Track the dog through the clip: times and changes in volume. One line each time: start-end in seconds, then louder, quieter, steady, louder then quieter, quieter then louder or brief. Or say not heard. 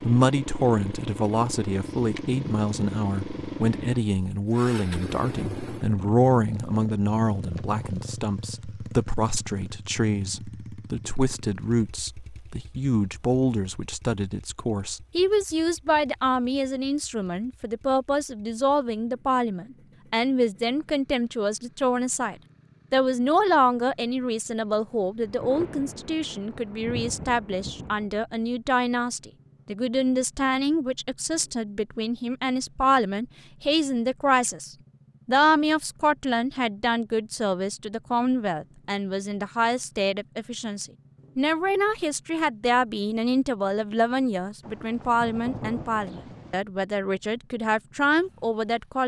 not heard.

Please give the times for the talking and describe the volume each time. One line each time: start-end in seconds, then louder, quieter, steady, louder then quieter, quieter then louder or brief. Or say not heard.
0.0-49.0 steady.